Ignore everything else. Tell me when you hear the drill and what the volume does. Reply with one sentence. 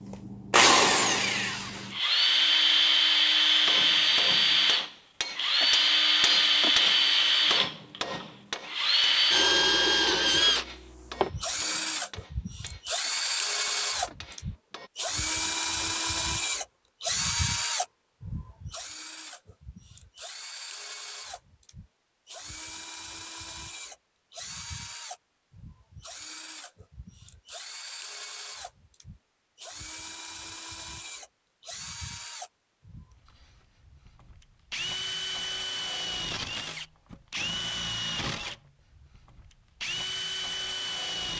You can hear the drill from 0.0 to 41.3 s, getting quieter then louder.